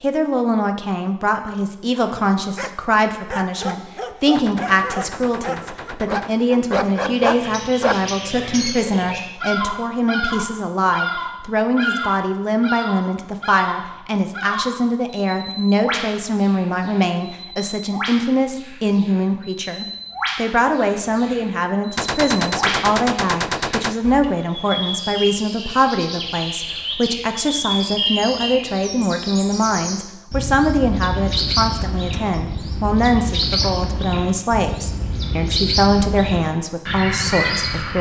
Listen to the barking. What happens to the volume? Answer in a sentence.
The volume of the barking goes up.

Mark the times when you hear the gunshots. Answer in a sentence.
You can hear the gunshots from 4.3 to 6.3 s and from 21.9 to 23.9 s.